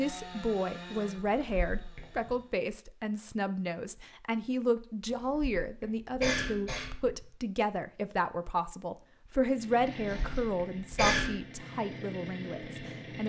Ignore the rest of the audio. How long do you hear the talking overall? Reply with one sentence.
You can hear the talking for 13 seconds altogether.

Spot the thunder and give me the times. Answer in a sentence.
The thunder can't be heard in this clip.